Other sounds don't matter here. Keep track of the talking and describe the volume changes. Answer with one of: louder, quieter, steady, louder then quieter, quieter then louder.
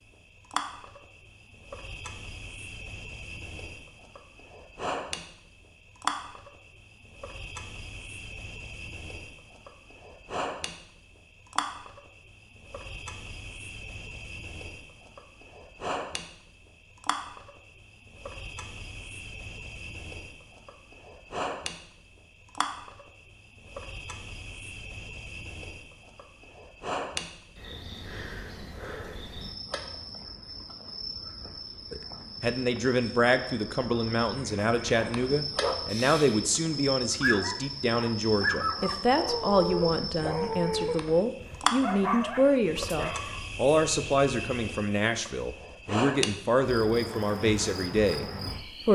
steady.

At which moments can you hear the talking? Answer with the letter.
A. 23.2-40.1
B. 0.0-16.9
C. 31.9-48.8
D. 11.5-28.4
C.